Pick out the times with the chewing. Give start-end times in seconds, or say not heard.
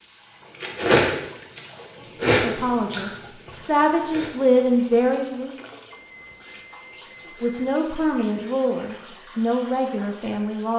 0.6-1.6, 2.2-5.7.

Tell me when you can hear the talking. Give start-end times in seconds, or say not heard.
2.2-5.5, 7.4-10.7.